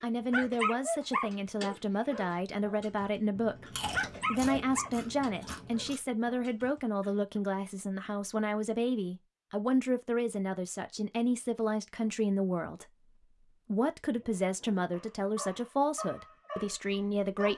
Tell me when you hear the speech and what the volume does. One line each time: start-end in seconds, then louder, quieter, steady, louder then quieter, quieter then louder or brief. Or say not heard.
0.0-17.5 steady.